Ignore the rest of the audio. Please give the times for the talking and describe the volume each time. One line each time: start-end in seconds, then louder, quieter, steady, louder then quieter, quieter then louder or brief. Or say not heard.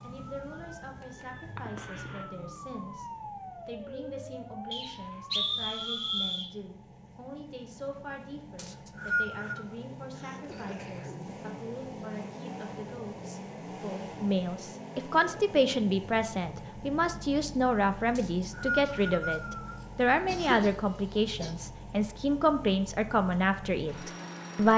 0.0-24.7 louder.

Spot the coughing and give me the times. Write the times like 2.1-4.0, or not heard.
1.6-2.2, 10.2-11.4, 19.8-21.6.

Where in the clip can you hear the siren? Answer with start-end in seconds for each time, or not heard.
0.1-6.4.